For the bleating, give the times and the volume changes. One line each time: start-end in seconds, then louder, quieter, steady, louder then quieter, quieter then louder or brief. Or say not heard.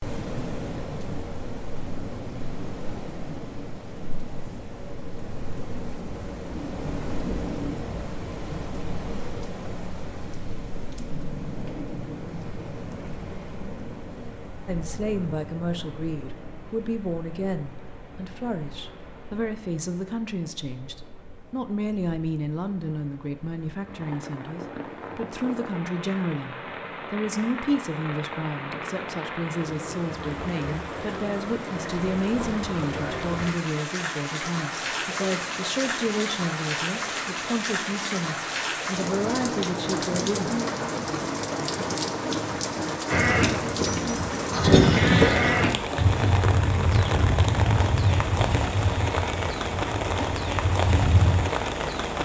43.1-51.5 quieter.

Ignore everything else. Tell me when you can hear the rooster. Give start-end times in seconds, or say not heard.
not heard.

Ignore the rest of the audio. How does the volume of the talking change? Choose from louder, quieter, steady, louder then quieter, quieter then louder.
steady.